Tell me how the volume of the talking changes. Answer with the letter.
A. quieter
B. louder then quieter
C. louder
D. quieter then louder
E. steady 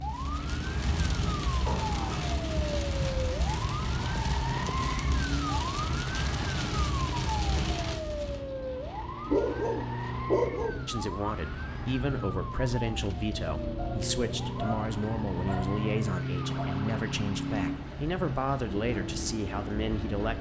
E.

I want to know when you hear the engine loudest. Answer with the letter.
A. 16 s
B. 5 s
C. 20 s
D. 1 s
A.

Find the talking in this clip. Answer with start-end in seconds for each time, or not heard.
10.8-20.3.